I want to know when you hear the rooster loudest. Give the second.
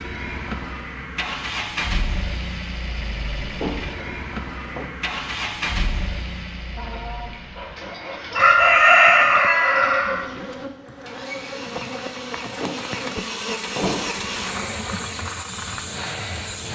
9 s.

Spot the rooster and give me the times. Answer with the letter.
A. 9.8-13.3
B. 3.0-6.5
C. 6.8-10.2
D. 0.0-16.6
C.